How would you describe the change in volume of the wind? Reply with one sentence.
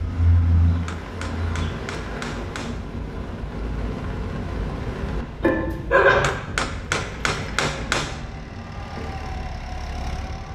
The volume of the wind goes down.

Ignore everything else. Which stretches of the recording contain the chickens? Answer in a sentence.
You can hear the chickens from 0.0 to 1.7 s.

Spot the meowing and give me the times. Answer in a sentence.
You can hear the meowing from 5.4 to 6.3 s.